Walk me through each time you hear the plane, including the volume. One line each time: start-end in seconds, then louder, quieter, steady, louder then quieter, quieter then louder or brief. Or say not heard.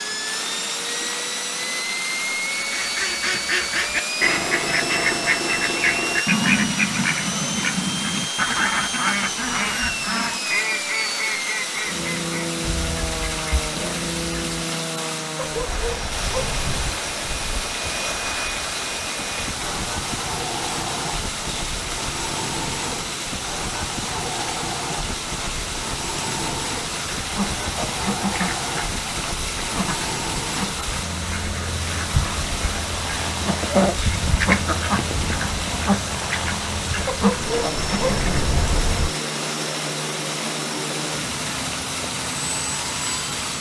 0.0-43.5 steady.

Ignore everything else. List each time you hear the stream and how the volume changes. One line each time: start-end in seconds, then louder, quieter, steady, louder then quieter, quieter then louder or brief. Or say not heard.
0.0-43.5 steady.